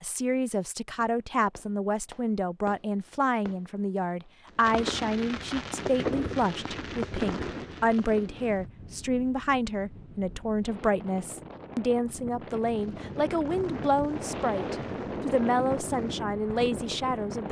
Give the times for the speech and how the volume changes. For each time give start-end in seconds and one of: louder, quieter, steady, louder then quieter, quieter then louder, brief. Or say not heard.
0.0-17.4 steady.